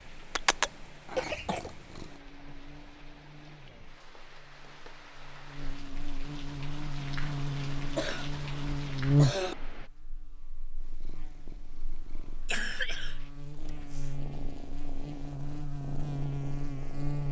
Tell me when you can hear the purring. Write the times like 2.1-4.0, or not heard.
0.0-2.2, 10.8-17.2.